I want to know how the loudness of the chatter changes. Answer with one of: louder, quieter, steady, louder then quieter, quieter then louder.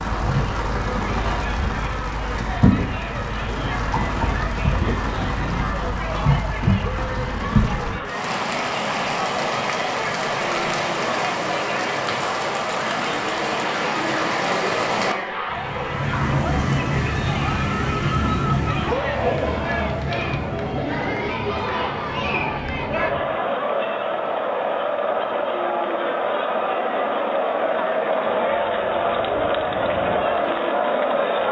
louder.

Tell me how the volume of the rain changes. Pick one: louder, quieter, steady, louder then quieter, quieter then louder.
quieter.